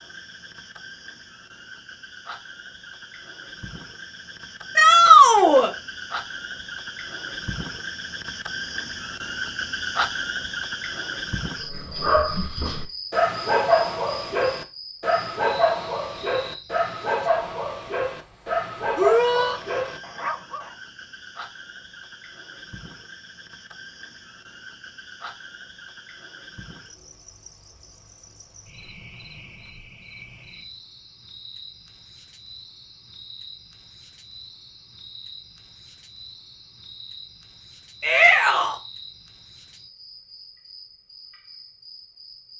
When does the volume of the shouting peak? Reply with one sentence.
The loudest moment of the shouting is at 5 seconds.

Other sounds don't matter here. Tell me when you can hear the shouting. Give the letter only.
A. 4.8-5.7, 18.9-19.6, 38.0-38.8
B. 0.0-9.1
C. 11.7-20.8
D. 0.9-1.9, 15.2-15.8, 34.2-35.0
A.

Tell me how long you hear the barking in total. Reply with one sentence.
The barking can be heard for 9 seconds in total.